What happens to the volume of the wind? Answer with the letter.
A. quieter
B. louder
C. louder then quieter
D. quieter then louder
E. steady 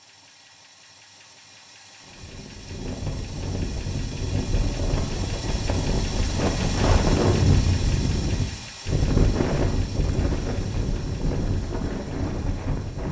C.